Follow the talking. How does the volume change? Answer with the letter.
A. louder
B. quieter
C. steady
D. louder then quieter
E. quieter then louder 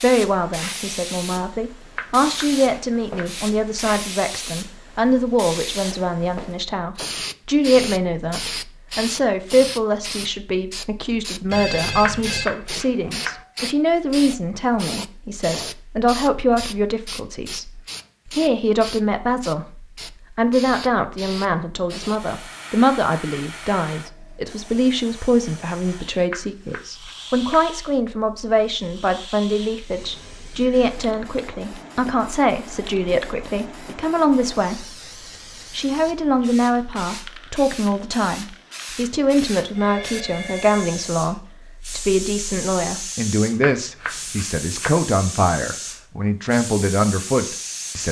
C.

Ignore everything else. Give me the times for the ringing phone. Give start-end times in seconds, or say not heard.
11.4-12.4, 39.8-41.2.